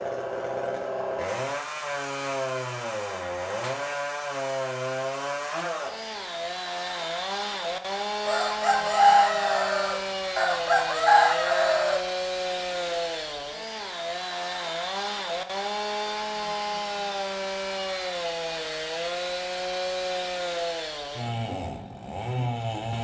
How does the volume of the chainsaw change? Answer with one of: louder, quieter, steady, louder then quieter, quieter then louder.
steady.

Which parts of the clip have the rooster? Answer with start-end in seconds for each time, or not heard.
8.2-12.0.